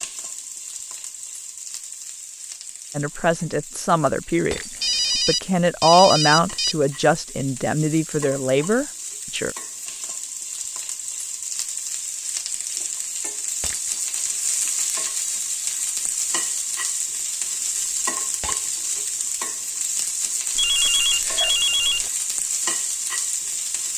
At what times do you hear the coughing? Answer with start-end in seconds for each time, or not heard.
not heard.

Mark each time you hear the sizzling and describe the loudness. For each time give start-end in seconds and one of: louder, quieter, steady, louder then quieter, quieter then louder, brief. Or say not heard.
0.0-23.9 louder.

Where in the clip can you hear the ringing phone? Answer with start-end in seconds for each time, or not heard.
4.8-6.8, 20.6-22.1.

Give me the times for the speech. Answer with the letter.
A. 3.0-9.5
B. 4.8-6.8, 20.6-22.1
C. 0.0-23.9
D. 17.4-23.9
A.